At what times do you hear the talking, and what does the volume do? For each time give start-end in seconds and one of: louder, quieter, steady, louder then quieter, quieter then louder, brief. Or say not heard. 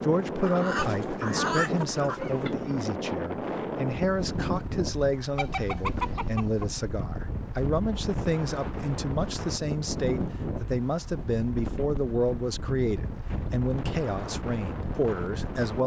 0.0-15.8 steady.